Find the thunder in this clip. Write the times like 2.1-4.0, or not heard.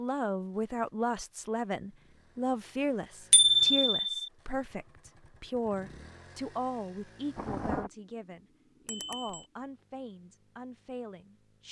7.3-7.9.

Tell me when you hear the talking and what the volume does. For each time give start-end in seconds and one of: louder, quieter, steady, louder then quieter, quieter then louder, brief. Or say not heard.
0.0-11.6 quieter.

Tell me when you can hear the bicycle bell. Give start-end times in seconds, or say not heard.
3.3-4.2, 8.8-9.4.